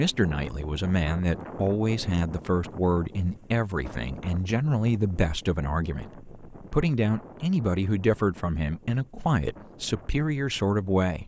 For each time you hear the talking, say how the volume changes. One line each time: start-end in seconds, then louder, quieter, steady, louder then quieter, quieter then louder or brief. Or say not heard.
0.0-11.2 steady.